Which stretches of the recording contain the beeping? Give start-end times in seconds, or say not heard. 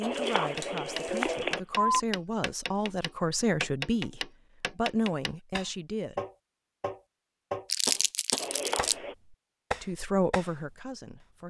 0.0-2.0, 8.3-9.2.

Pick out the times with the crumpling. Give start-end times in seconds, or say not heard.
0.1-1.6, 7.7-8.9.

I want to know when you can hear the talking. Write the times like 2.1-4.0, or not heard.
0.0-6.2, 9.8-11.4.